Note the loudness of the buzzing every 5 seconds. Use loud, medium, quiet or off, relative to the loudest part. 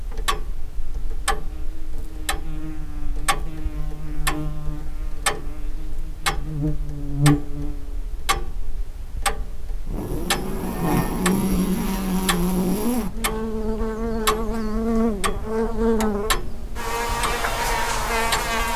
quiet, loud, loud, loud.